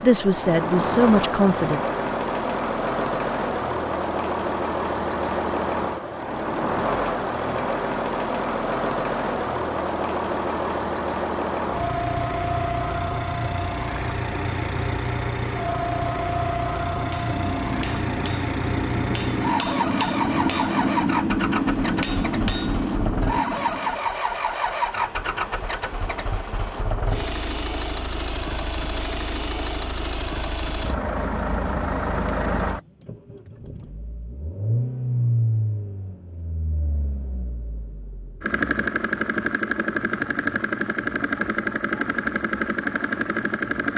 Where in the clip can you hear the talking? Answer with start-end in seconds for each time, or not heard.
0.0-1.8.